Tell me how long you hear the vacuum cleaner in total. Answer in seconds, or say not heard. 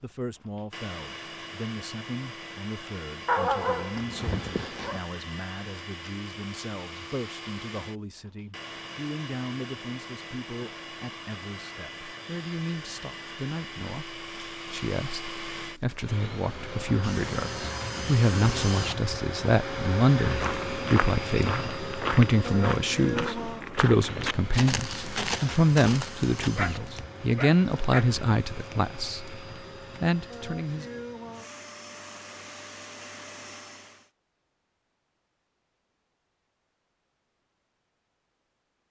34 s.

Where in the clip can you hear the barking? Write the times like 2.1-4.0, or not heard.
3.2-5.0, 26.6-28.1.